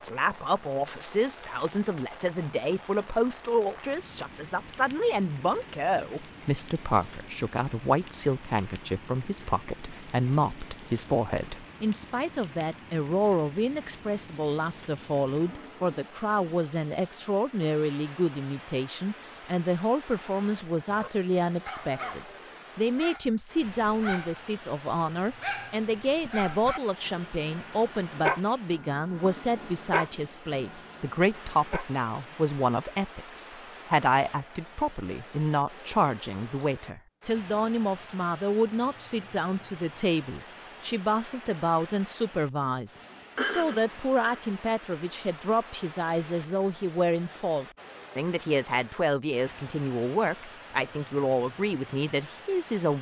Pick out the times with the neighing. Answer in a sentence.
You can hear the neighing from 43.4 to 44.4 s.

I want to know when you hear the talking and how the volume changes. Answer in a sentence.
The talking can be heard from 0.0 to 52.9 s, at a steady volume.